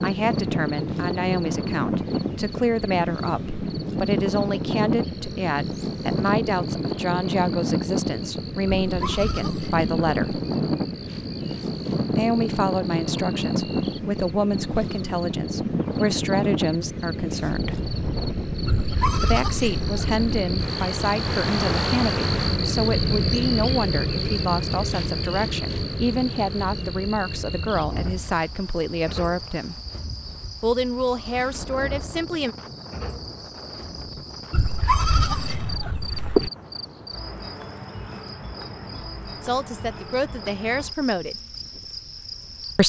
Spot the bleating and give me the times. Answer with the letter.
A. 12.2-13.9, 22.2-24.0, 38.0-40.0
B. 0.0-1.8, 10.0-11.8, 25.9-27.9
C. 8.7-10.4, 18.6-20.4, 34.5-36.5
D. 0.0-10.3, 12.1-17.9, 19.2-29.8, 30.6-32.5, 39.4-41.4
C.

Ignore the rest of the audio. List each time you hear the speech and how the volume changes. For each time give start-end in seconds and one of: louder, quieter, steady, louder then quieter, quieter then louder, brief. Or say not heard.
0.0-10.3 steady
12.1-17.9 steady
19.2-29.8 steady
30.6-32.5 brief
39.4-41.4 brief.